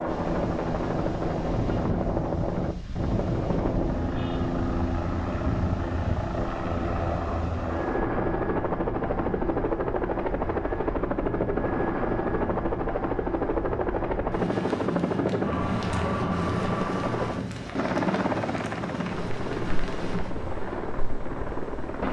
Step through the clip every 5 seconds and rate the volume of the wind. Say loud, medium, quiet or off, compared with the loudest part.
loud, loud, loud, loud, medium.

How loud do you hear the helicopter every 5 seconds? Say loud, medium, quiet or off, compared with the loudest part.
loud, loud, loud, loud, medium.